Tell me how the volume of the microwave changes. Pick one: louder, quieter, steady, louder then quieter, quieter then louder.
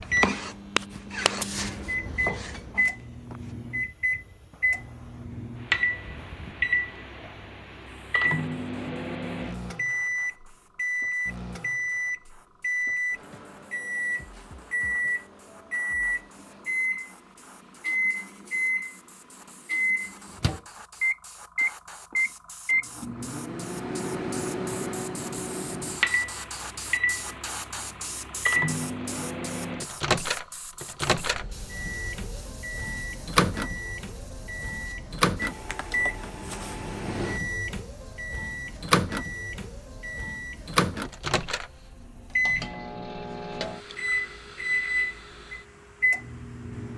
steady.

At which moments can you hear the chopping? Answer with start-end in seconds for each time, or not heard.
0.0-3.5.